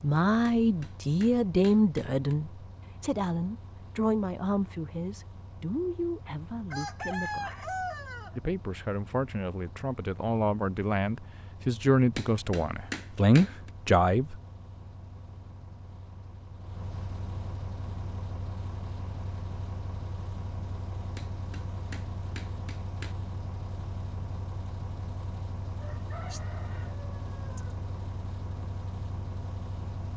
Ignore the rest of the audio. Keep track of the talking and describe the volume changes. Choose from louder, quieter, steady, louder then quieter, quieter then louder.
quieter then louder.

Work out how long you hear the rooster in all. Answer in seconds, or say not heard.
4 s.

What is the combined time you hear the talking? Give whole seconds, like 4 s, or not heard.
14 s.